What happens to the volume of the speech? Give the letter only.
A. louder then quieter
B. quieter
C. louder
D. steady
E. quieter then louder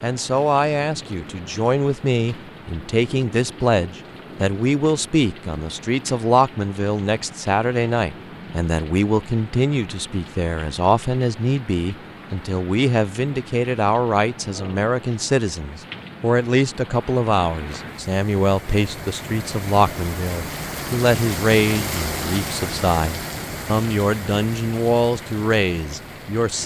D.